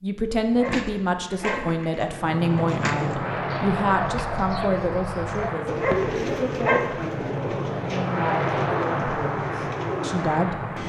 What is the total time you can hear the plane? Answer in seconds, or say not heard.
9 s.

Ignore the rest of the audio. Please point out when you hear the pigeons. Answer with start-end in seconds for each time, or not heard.
0.5-10.3.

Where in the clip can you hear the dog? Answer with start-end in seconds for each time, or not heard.
0.5-1.8, 5.7-7.0.